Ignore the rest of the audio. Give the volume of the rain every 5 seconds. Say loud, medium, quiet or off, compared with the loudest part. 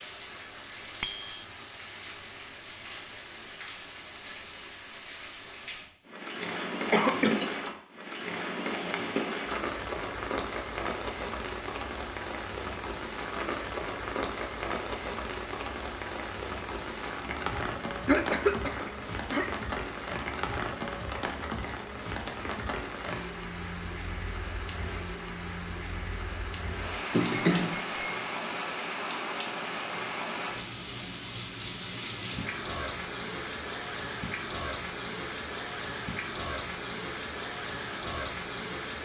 medium, loud, loud, loud, loud, loud, loud, loud.